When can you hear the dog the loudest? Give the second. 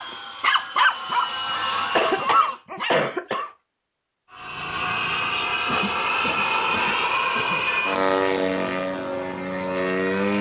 1 s.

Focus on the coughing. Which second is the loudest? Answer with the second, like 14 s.
2 s.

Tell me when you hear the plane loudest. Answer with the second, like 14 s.
8 s.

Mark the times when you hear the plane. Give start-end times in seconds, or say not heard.
0.0-2.6, 4.3-10.3.